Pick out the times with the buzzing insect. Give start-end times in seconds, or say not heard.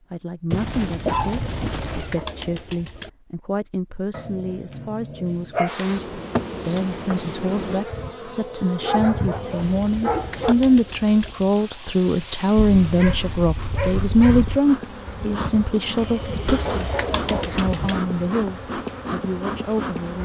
5.7-20.2.